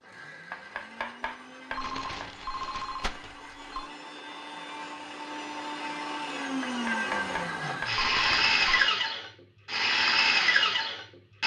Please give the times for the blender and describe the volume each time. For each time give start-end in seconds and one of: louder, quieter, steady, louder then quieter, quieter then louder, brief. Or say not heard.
0.0-11.4 louder.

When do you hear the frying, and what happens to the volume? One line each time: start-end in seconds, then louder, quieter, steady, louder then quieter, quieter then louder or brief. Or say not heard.
not heard.